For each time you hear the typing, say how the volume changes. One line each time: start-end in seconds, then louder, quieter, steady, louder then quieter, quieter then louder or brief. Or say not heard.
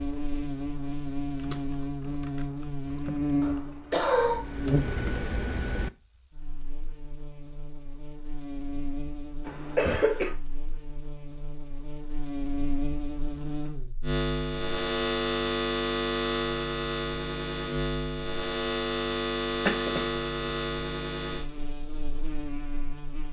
1.2-5.9 louder.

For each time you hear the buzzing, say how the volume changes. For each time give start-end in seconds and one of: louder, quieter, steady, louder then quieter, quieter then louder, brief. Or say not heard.
0.0-23.2 quieter then louder.